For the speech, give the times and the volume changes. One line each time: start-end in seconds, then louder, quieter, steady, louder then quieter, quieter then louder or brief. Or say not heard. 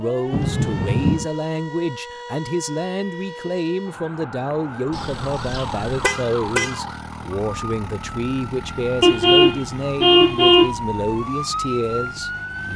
0.0-12.7 steady.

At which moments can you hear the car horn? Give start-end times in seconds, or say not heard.
0.3-1.2, 4.9-6.8, 9.0-10.7.